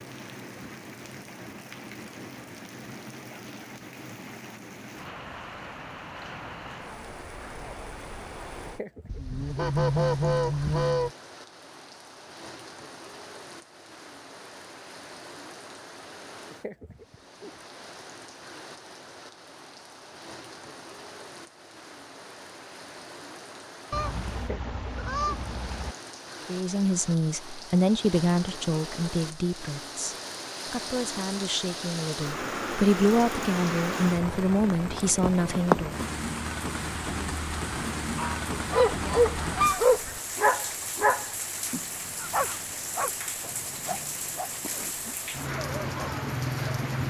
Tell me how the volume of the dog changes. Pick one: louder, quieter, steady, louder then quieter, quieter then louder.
quieter.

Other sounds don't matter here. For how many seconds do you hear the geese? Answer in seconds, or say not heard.
6 s.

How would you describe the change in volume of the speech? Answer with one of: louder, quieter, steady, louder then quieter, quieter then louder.
quieter then louder.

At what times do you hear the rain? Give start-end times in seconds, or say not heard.
0.0-47.0.